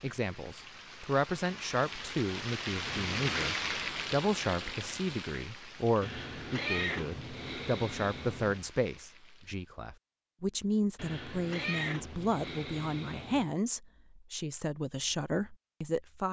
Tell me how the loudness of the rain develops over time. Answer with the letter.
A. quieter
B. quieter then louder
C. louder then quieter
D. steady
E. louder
C.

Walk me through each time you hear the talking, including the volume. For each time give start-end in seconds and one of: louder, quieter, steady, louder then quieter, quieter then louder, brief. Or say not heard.
0.0-16.2 steady.